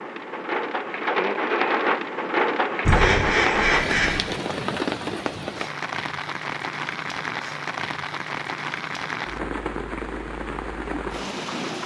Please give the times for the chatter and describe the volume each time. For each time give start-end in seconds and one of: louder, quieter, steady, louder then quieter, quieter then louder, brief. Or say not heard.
not heard.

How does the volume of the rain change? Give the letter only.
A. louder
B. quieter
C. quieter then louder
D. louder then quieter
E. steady
B.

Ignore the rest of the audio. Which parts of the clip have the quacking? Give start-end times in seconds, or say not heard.
2.9-4.2.